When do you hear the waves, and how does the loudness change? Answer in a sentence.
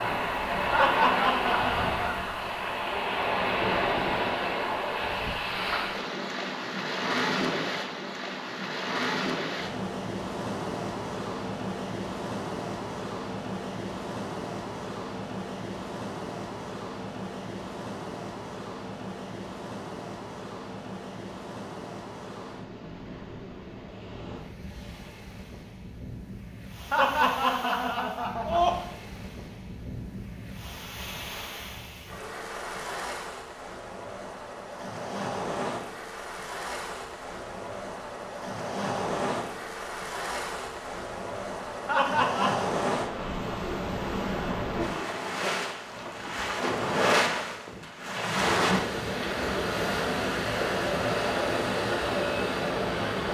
The waves can be heard from 0.0 to 53.2 s, getting quieter then louder.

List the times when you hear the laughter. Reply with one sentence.
The laughter can be heard from 0.7 to 2.2 s, from 26.9 to 28.8 s and from 41.9 to 42.6 s.